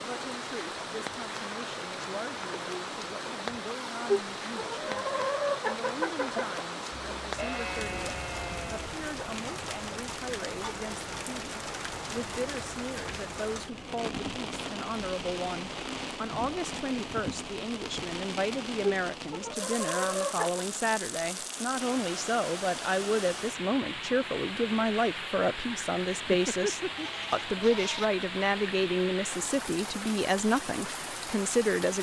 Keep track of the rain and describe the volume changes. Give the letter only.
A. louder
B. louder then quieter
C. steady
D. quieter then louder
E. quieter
C.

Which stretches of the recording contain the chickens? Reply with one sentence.
You can hear the chickens from 4.0 to 6.7 s and from 18.8 to 20.5 s.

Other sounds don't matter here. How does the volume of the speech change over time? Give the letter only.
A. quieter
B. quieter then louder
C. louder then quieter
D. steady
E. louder
E.